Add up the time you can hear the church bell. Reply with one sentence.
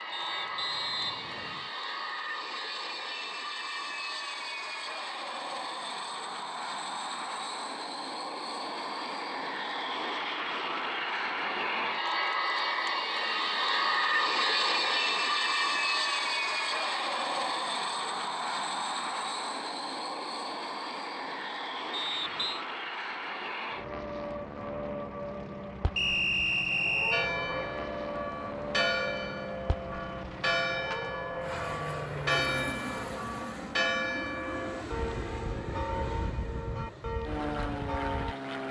You can hear the church bell for 11 seconds altogether.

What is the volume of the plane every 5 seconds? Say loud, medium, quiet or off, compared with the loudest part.
medium, medium, loud, loud, medium, medium, medium, medium.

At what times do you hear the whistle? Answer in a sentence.
The whistle can be heard from 0.1 to 1.7 s, from 21.9 to 22.6 s and from 25.9 to 27.3 s.